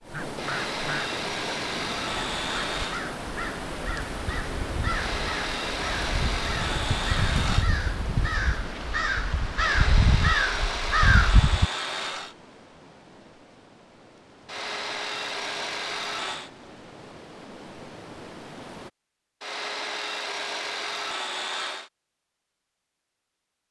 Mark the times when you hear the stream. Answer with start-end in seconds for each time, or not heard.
0.0-18.9.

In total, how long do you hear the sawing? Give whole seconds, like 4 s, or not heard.
13 s.